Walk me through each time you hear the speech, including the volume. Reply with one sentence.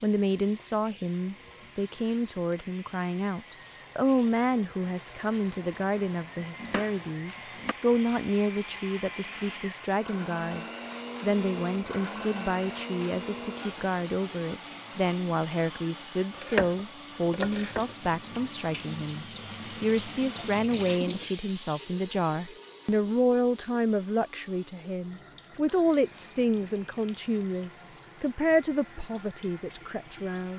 The speech can be heard from 0.0 to 30.5 s, at a steady volume.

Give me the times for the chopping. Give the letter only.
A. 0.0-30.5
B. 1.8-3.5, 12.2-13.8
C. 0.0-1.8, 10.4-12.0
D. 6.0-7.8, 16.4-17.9
D.